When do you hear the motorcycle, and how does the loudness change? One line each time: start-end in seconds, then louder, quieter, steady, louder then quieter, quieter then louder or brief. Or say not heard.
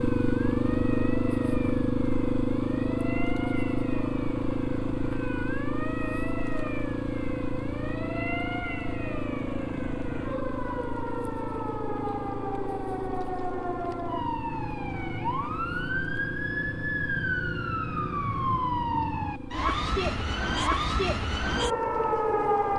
0.0-22.7 quieter.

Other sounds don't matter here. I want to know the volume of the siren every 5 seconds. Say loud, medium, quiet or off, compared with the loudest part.
quiet, medium, medium, loud, loud.